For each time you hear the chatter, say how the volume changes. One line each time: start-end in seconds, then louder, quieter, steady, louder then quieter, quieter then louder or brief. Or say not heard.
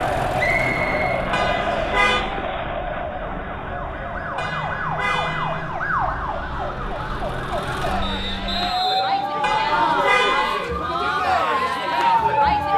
0.0-12.7 quieter then louder.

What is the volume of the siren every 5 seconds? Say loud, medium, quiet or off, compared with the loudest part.
medium, loud, loud.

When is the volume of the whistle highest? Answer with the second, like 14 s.
1 s.